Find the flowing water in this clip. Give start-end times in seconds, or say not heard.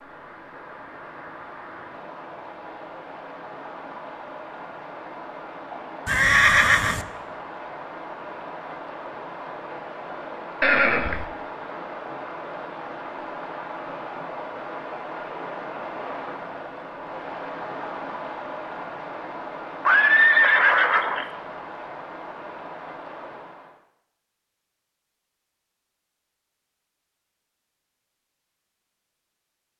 0.0-23.8.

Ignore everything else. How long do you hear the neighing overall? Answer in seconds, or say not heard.
3 s.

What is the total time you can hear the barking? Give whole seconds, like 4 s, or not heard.
not heard.